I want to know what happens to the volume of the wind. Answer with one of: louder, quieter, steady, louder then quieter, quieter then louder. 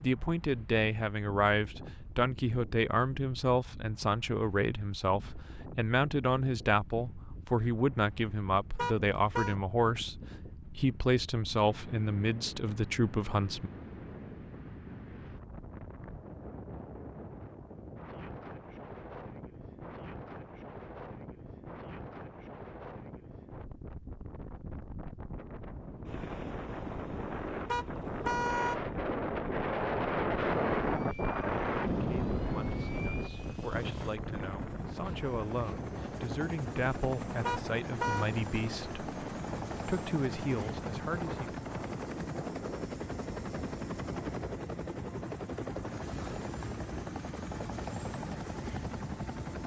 louder then quieter.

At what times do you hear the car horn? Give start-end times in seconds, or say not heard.
8.8-9.6, 27.6-28.8, 37.5-38.3.